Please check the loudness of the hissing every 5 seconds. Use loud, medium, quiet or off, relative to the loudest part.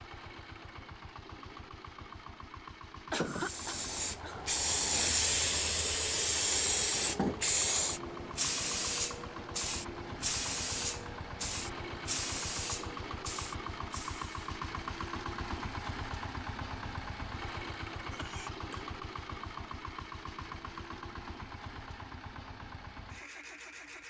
loud, loud, medium, off, off.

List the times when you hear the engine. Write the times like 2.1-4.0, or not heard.
0.0-24.0.